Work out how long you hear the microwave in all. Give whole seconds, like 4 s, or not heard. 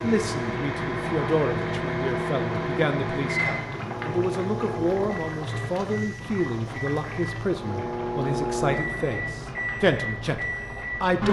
11 s.